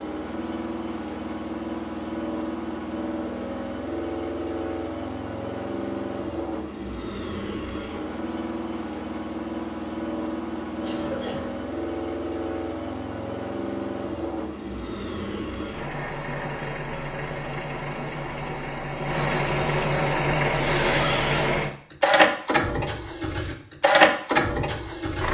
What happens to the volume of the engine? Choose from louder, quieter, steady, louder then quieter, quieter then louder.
louder.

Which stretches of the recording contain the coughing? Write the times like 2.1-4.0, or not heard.
10.7-11.5.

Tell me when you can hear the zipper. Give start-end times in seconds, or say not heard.
20.5-21.6.